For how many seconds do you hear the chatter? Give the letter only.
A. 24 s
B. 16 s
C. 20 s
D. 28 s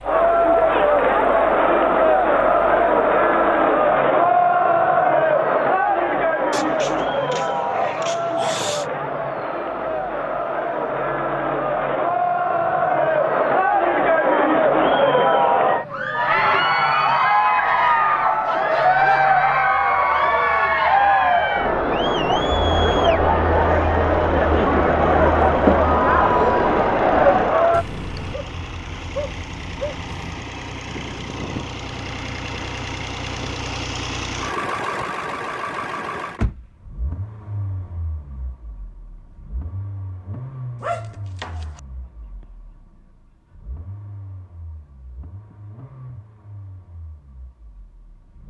D.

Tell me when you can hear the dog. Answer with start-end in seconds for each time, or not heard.
6.5-8.8, 17.6-19.4, 27.7-30.1, 40.8-41.8.